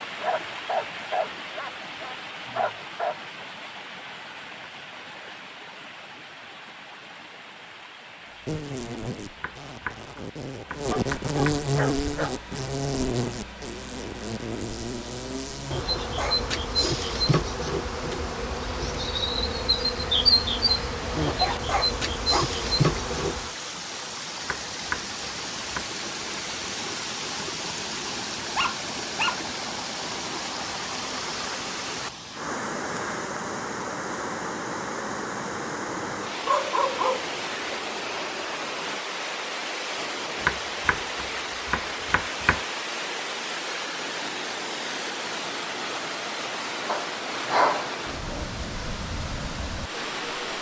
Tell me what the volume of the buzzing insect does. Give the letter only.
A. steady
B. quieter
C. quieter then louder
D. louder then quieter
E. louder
E.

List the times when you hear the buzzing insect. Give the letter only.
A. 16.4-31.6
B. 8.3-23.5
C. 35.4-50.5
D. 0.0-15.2
B.